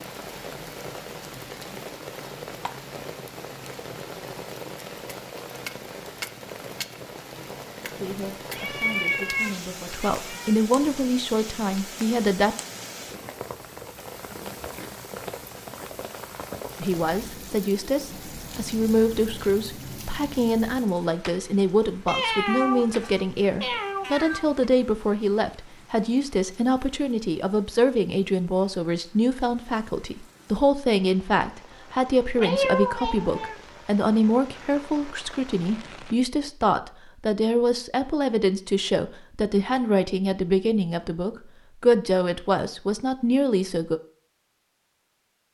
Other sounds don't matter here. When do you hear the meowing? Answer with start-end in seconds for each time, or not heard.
8.5-10.6, 22.1-24.5, 32.4-33.5.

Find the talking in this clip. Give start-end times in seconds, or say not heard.
7.8-12.6, 16.8-44.0.